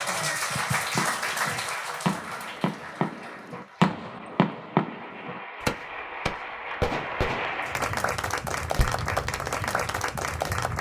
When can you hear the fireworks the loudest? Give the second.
4 s.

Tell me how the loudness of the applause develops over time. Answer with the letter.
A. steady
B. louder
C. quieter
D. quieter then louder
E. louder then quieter
D.